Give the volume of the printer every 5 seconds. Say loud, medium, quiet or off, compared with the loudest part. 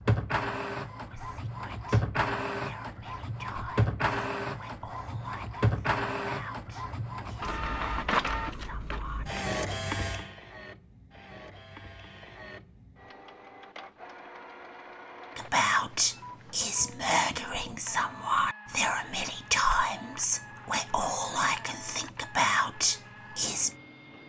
loud, loud, quiet, quiet, quiet.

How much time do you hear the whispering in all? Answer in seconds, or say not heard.
17 s.